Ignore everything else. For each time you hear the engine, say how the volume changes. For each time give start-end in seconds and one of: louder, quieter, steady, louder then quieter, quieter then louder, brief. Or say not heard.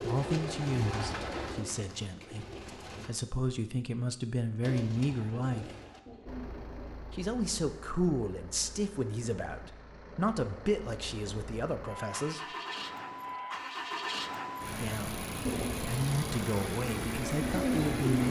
6.2-18.2 louder.